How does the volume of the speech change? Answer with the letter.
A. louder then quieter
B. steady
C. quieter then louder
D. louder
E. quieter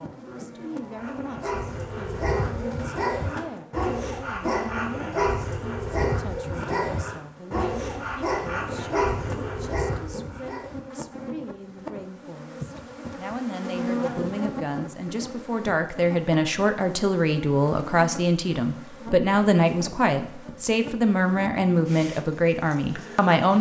D.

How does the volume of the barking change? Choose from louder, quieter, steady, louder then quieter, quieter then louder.
steady.